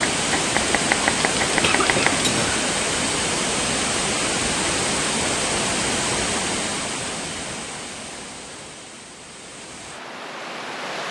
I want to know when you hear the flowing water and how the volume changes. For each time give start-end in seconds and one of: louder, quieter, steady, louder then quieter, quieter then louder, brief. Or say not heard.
0.0-11.0 quieter.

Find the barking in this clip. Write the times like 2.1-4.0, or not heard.
not heard.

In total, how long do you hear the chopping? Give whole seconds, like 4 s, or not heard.
2 s.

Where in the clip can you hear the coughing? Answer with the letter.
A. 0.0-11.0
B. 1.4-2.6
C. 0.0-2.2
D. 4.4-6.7
B.